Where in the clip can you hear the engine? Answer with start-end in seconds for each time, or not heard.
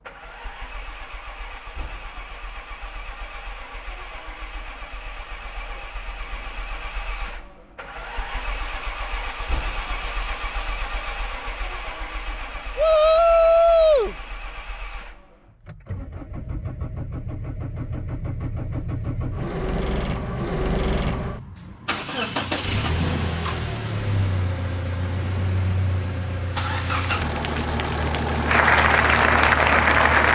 0.0-30.3.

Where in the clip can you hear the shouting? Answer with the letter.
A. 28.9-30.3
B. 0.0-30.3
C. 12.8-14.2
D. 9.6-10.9
C.